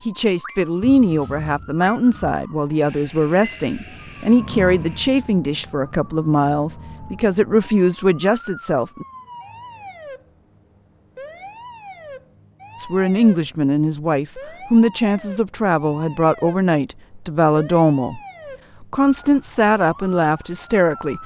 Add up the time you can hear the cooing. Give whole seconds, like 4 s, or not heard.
not heard.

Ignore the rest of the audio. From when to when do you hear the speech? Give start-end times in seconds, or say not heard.
0.1-9.1, 12.8-18.2, 18.8-21.2.